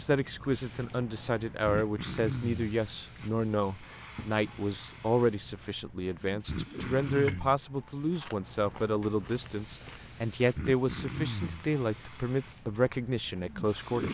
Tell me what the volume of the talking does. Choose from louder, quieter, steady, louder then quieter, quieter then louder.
steady.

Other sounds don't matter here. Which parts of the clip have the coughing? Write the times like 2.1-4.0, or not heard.
1.6-2.6, 6.5-7.6, 10.6-11.7.